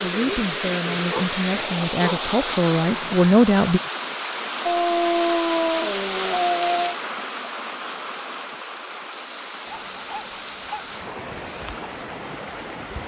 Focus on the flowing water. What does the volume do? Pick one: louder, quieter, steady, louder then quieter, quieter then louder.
quieter.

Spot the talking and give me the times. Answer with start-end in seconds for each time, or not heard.
0.0-3.8.